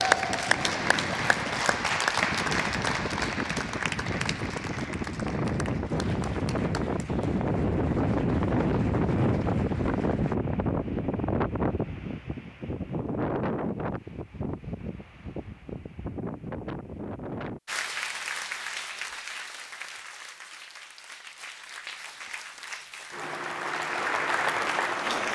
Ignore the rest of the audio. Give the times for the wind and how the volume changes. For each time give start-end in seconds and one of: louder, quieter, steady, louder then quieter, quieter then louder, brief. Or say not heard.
0.0-17.6 louder then quieter.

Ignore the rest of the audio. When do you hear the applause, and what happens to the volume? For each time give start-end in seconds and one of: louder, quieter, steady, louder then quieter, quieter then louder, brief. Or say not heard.
0.0-10.3 quieter
17.6-25.3 quieter then louder.